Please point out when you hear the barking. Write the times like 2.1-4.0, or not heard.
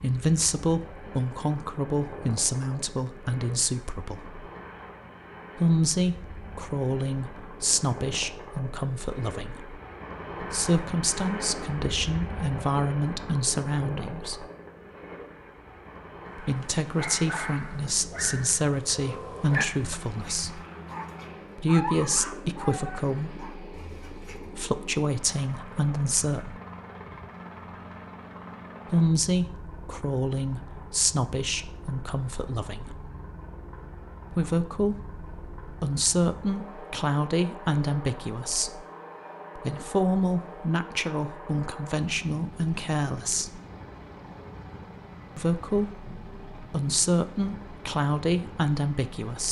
16.4-24.5.